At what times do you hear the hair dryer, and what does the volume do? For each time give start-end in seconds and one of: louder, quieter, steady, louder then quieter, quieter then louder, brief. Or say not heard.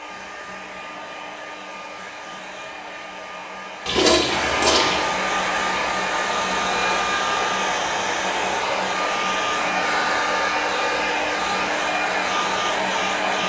0.0-13.4 louder.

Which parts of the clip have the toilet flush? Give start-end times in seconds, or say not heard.
3.9-5.0.